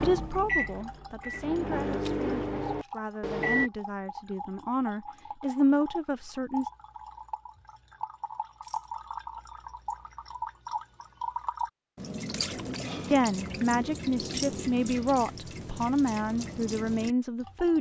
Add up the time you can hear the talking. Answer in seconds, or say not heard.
11 s.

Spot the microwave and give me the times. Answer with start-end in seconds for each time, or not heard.
0.0-3.7.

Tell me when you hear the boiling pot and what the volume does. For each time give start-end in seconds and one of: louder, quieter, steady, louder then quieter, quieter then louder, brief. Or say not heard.
not heard.